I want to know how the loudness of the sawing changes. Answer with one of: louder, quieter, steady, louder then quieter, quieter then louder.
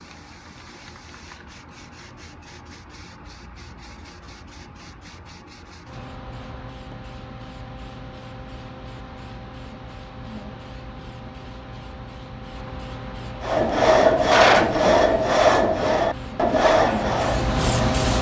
quieter.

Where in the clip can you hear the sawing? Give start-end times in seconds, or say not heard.
13.4-18.1.